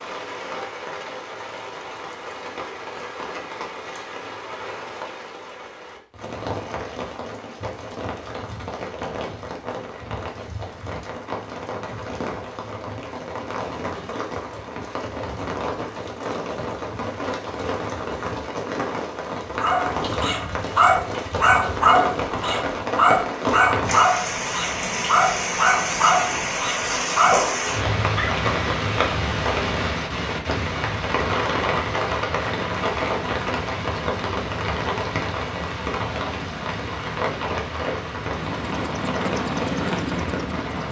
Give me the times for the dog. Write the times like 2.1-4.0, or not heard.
19.6-28.4.